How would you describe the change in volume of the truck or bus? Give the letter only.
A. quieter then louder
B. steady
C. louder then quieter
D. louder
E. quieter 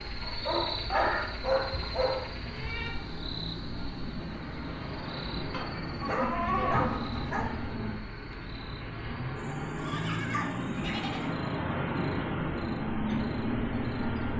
D.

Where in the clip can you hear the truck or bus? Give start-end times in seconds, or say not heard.
0.0-14.3.